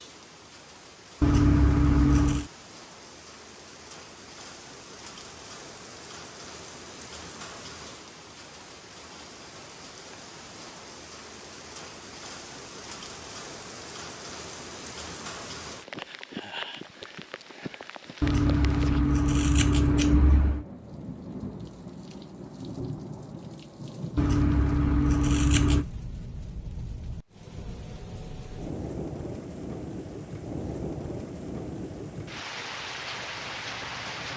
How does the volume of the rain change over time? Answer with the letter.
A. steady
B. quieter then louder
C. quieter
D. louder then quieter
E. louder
E.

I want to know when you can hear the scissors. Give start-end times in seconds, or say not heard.
1.2-2.5, 18.2-20.6, 24.1-25.9.